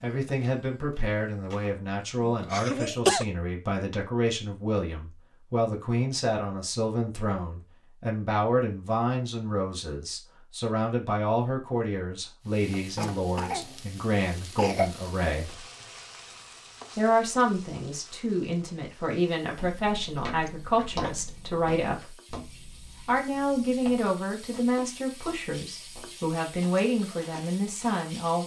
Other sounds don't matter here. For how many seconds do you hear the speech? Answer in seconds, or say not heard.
26 s.